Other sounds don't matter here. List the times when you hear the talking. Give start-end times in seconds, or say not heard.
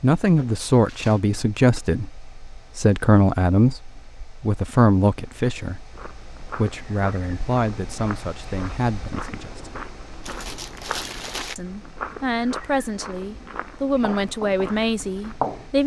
0.0-9.8, 11.6-15.8.